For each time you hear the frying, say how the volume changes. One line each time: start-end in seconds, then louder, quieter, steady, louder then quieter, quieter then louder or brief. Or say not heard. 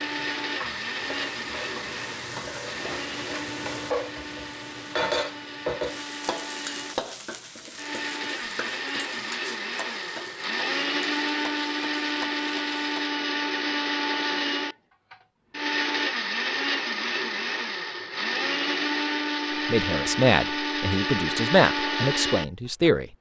0.0-13.1 louder then quieter.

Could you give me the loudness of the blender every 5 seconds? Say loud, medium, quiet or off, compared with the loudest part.
medium, medium, loud, loud, loud.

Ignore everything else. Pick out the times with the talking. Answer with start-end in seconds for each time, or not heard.
19.6-23.1.